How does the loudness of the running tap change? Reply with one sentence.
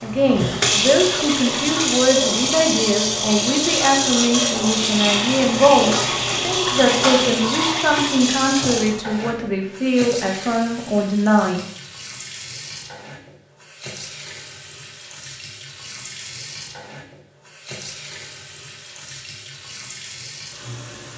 The volume of the running tap goes down.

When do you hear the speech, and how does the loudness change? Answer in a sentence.
The speech can be heard from 0.0 to 11.6 s, at a steady volume.